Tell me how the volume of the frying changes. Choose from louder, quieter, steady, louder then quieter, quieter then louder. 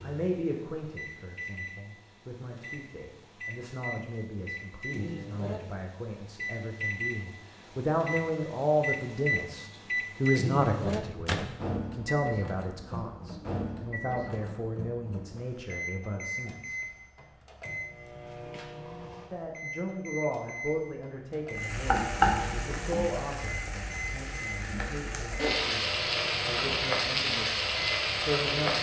quieter then louder.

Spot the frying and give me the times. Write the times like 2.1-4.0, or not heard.
21.6-28.7.